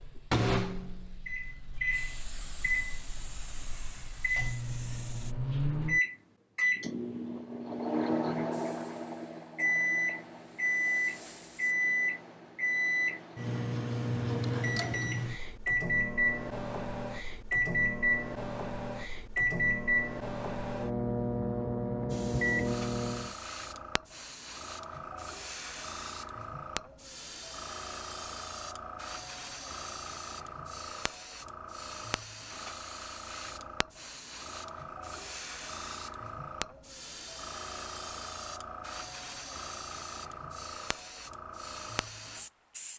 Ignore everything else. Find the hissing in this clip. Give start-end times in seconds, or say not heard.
0.0-5.3, 8.5-11.8, 22.1-42.9.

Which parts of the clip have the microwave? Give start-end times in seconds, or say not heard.
0.0-23.4.